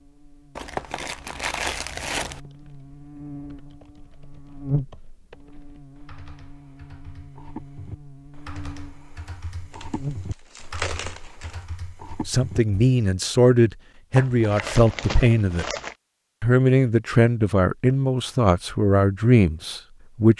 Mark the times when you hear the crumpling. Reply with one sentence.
The crumpling can be heard from 0.6 to 2.4 s, from 9.7 to 11.6 s and from 14.2 to 15.9 s.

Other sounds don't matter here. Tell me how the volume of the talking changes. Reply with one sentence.
The loudness of the talking stays about the same.